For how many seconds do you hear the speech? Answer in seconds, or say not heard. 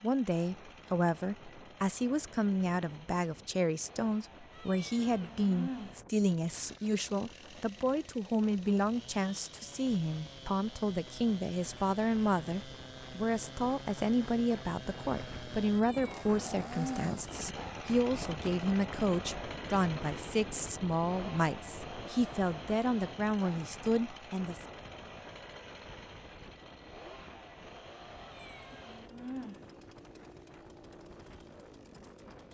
25 s.